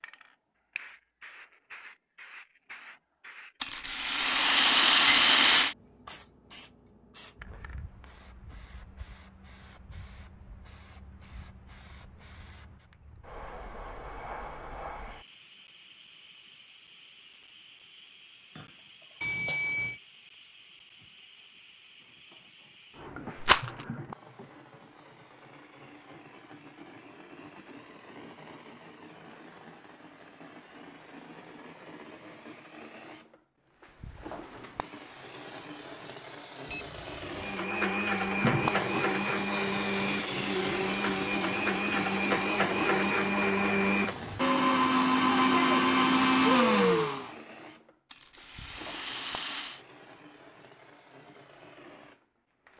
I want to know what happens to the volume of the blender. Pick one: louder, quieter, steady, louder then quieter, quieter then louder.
louder.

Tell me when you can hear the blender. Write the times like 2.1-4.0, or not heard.
37.3-47.3.